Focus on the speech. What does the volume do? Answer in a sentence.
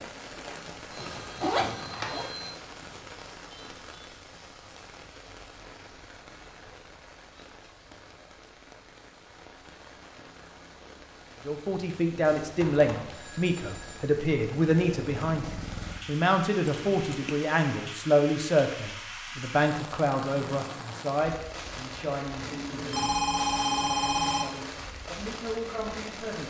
The loudness of the speech goes down.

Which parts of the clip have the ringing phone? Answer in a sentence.
You can hear the ringing phone from 1.1 to 2.5 s, from 12.1 to 14.0 s and from 22.5 to 24.4 s.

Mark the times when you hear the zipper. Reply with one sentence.
The zipper can be heard from 0.9 to 2.3 s and from 16.6 to 17.4 s.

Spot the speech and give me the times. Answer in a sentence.
You can hear the speech from 11.4 to 26.4 s.